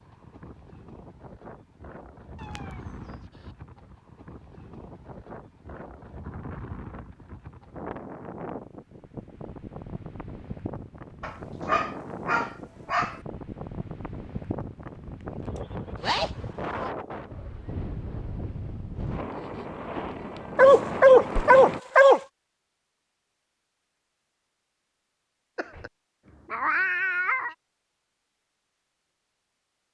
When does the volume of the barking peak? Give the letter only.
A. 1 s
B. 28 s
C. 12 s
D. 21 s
D.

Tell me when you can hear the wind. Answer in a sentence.
The wind can be heard from 0.0 to 21.8 s.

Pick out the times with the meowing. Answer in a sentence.
The meowing can be heard from 2.4 to 3.2 s, from 16.0 to 16.9 s and from 25.6 to 27.6 s.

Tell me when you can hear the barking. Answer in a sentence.
The barking can be heard from 11.2 to 13.2 s and from 20.6 to 22.2 s.